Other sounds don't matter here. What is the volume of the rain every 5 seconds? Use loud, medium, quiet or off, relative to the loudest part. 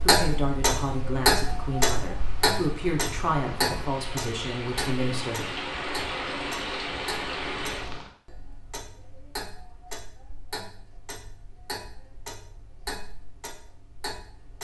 medium, loud, off.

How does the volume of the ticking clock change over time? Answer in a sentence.
The loudness of the ticking clock goes down.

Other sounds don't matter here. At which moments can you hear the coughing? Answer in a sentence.
You can't hear the coughing here.